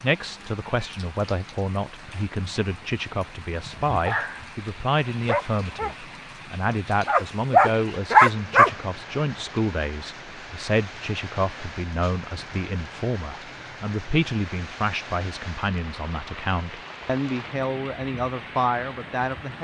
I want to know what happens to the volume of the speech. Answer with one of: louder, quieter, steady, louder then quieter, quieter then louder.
steady.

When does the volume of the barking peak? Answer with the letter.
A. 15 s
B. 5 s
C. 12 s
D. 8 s
D.